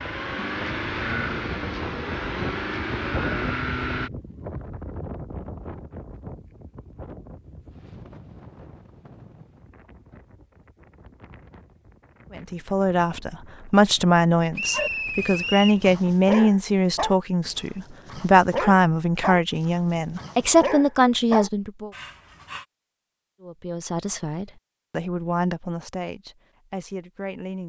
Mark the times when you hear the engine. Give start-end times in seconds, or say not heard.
0.0-4.1.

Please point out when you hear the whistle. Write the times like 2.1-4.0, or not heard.
14.6-15.8.